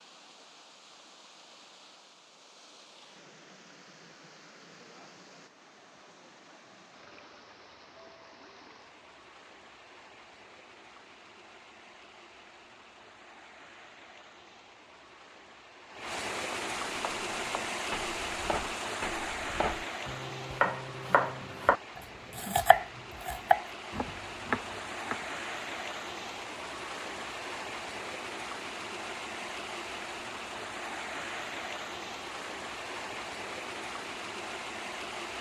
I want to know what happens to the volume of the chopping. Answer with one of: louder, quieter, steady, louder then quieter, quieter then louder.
louder.